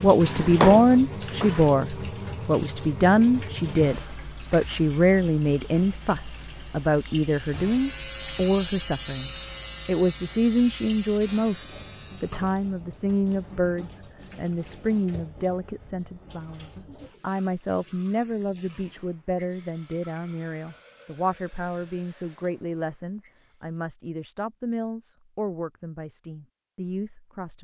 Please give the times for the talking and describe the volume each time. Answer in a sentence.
The talking can be heard from 0.0 to 27.5 s, getting quieter.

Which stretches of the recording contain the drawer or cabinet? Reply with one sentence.
You can hear the drawer or cabinet from 0.2 to 1.7 s.